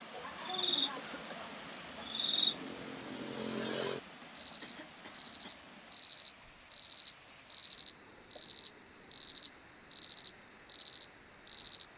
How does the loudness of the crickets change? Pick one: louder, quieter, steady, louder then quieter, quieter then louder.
louder.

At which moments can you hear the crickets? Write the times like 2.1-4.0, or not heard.
0.0-11.8.